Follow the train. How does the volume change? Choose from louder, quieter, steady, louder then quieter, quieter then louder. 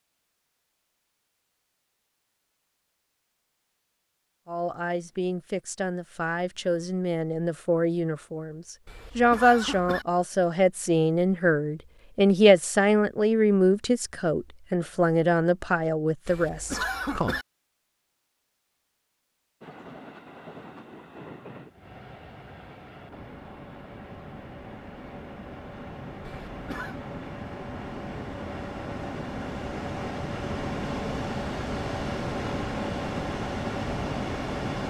louder.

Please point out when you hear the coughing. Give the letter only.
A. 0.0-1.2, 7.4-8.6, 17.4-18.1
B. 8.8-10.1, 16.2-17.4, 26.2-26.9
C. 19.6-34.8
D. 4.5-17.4
B.